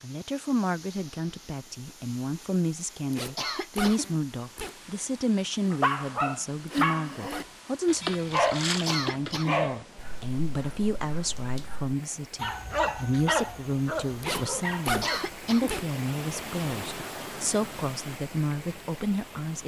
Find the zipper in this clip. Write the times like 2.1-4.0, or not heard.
3.1-4.8, 6.7-7.5, 14.2-15.8.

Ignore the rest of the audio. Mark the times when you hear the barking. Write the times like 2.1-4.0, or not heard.
5.6-15.4.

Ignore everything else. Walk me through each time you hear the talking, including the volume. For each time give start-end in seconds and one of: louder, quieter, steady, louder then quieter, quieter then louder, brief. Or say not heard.
0.0-19.6 steady.